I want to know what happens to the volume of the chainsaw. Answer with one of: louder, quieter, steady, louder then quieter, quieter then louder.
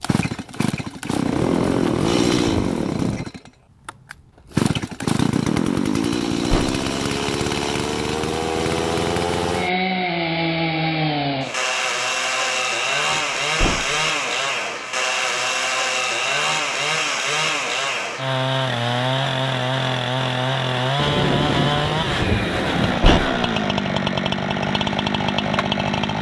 steady.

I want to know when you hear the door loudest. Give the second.
23 s.